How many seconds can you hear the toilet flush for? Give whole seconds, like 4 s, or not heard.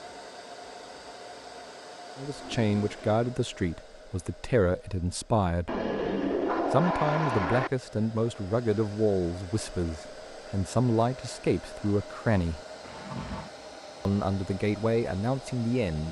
4 s.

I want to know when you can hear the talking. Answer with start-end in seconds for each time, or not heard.
2.1-5.8, 6.7-12.6, 14.1-16.0.